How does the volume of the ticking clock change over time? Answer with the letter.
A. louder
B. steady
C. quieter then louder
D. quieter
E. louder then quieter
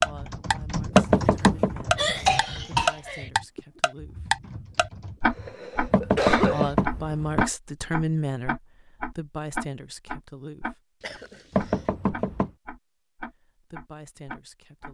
D.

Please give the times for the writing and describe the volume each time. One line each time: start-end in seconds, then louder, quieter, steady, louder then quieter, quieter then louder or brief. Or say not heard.
not heard.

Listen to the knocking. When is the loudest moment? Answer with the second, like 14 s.
1 s.